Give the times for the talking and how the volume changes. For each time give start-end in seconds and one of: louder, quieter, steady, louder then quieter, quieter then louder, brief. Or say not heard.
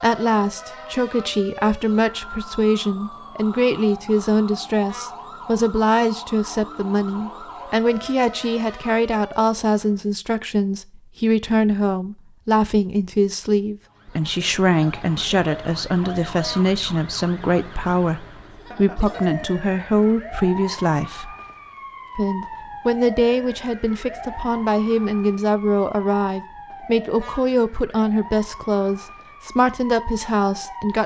0.0-21.4 steady
22.1-31.0 steady.